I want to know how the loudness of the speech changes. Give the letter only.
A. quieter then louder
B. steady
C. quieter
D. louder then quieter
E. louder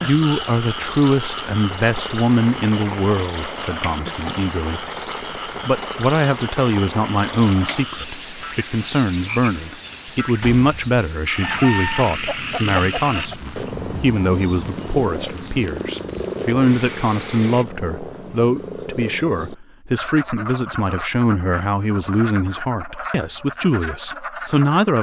B.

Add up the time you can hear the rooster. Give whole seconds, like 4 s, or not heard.
2 s.